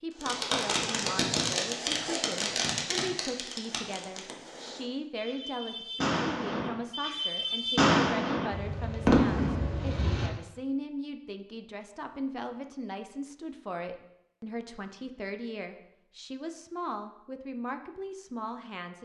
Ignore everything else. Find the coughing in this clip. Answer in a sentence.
The coughing can't be heard in this clip.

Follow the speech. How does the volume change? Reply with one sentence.
The loudness of the speech stays about the same.